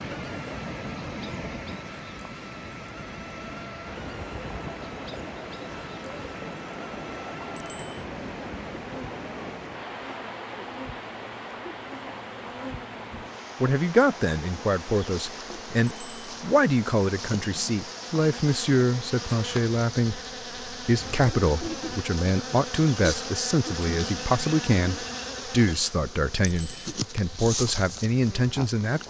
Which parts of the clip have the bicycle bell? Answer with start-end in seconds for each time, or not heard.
7.5-8.1, 15.8-16.4, 26.4-26.9.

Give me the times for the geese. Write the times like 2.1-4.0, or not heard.
not heard.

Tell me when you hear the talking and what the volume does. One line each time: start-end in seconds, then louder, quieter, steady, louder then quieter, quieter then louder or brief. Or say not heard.
13.1-29.0 steady.